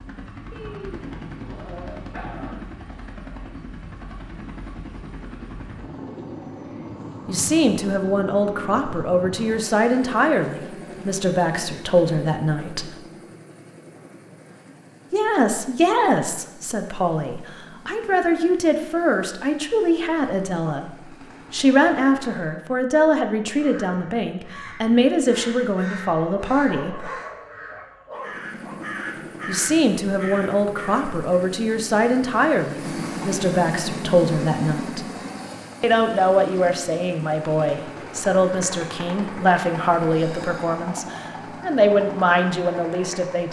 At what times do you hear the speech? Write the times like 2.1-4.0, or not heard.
7.2-12.9, 15.1-27.1, 29.4-35.0, 35.8-43.4.